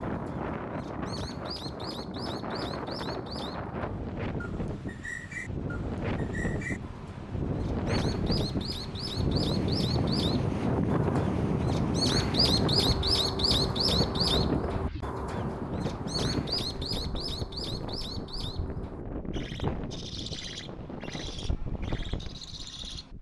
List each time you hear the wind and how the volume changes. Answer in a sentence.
The wind can be heard from 0.0 to 23.1 s, getting louder then quieter.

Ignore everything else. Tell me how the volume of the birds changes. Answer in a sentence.
The loudness of the birds goes up, then down.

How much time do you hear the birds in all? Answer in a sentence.
You can hear the birds for 23 seconds altogether.